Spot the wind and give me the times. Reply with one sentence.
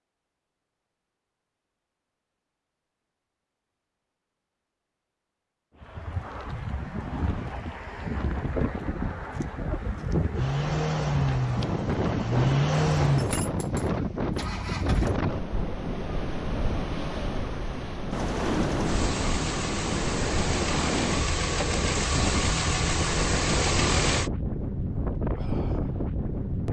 The wind can be heard from 5.8 to 26.6 s.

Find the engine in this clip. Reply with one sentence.
You can hear the engine from 10.3 to 15.2 s and from 18.1 to 24.3 s.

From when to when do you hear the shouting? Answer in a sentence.
The shouting can't be heard in this clip.